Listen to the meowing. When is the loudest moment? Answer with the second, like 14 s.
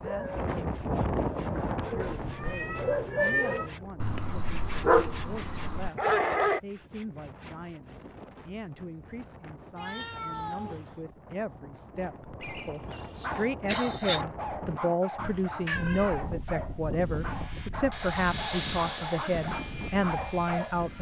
3 s.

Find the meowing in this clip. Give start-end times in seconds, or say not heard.
1.9-3.7, 9.8-11.0, 15.7-16.2.